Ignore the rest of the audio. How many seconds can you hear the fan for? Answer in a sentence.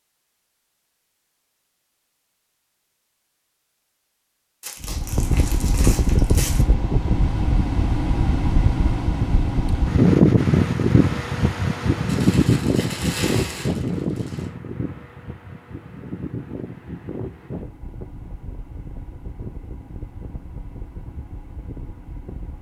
The fan can be heard for 18 seconds in total.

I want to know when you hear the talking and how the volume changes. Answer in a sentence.
The talking can't be heard in this clip.